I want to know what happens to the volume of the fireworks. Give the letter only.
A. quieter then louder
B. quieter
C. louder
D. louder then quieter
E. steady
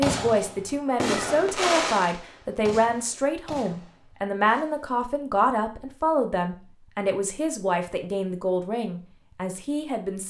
B.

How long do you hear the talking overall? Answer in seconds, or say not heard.
10 s.